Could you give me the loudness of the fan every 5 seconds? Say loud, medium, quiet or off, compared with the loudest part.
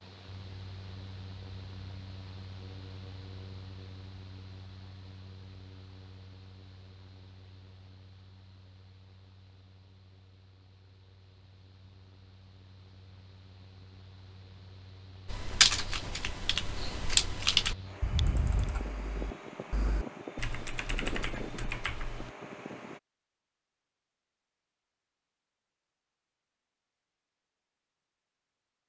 medium, quiet, quiet, loud, loud, off.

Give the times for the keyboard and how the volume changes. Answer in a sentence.
You can hear the keyboard from 15.2 to 22.3 s, getting louder then quieter.